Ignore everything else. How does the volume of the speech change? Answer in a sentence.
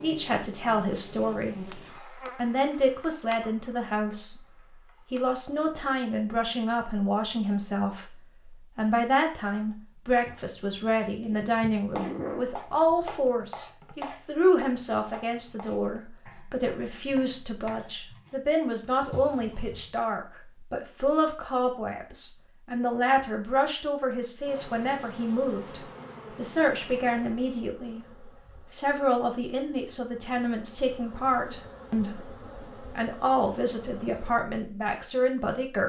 The loudness of the speech stays about the same.